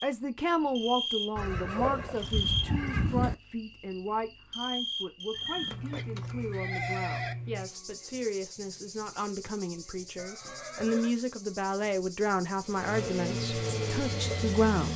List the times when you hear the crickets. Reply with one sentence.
The crickets can be heard from 0.0 to 14.9 s.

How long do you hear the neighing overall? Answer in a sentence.
You can hear the neighing for 5 seconds altogether.